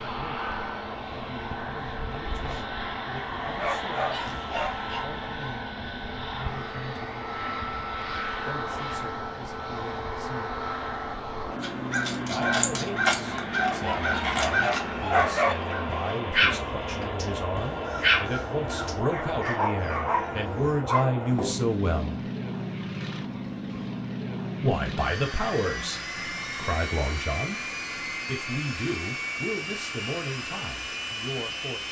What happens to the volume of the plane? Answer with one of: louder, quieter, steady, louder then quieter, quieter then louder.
steady.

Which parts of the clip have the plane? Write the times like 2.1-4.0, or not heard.
0.0-31.8.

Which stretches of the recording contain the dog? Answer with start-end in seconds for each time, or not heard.
3.4-5.5, 13.6-21.6.